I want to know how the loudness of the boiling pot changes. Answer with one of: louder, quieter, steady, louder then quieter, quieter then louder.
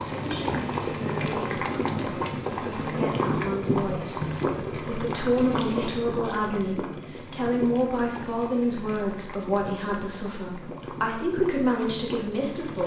quieter.